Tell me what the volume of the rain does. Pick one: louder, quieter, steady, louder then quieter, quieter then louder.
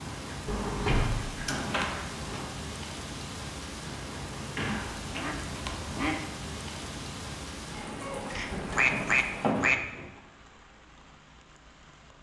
quieter.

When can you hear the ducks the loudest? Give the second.
9 s.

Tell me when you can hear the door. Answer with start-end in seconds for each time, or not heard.
0.5-2.5, 4.3-5.3, 8.5-10.1.